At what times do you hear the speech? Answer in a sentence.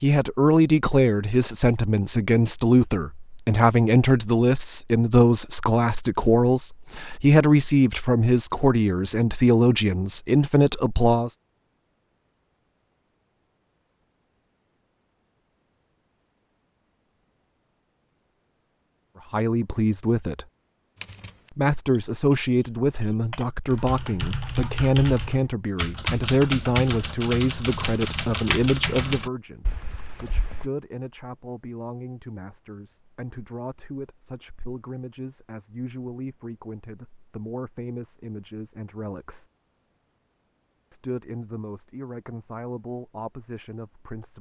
You can hear the speech from 0.0 to 11.3 s, from 19.3 to 20.4 s, from 21.6 to 39.5 s and from 40.9 to 44.3 s.